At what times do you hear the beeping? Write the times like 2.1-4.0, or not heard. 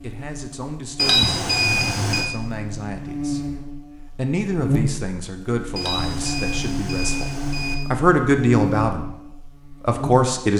0.9-2.3, 5.8-7.8.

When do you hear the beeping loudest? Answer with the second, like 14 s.
1 s.